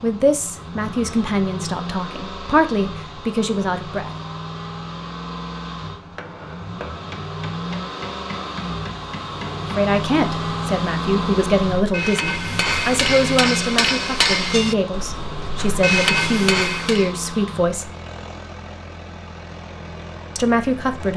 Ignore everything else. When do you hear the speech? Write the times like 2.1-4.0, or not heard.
0.0-4.1, 9.6-17.9, 20.4-21.1.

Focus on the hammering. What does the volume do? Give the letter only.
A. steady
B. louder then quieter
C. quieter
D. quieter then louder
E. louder
E.